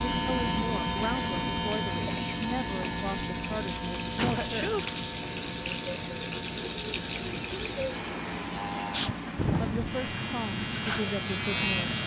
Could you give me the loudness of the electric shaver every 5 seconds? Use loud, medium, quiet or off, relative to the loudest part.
loud, medium, loud.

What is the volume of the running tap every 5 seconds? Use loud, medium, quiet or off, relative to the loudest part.
loud, loud, medium.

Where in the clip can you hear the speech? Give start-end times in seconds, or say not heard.
0.1-4.7, 9.6-11.9.